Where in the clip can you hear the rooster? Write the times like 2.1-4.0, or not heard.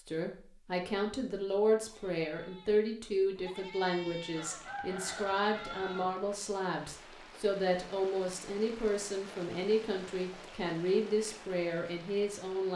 4.3-6.1.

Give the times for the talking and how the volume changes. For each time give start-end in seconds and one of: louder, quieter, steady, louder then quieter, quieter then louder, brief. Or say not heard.
0.0-12.7 steady.